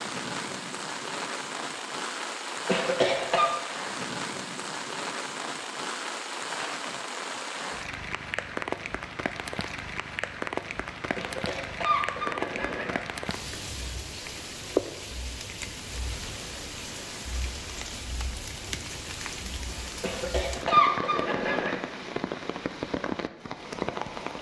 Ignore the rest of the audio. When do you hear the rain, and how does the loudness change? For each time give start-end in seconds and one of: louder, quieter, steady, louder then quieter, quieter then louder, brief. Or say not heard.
0.0-24.3 steady.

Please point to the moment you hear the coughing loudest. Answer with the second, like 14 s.
21 s.